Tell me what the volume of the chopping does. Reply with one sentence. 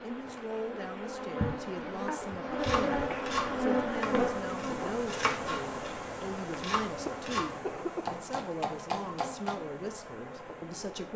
The loudness of the chopping stays about the same.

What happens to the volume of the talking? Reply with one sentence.
The volume of the talking stays about the same.